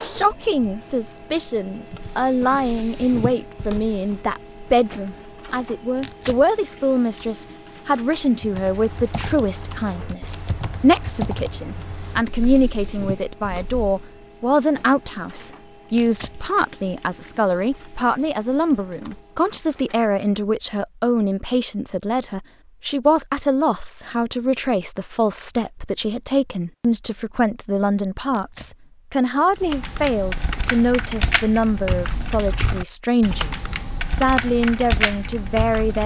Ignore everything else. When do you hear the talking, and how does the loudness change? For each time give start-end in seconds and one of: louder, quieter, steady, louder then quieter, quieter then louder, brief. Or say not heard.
0.0-36.0 steady.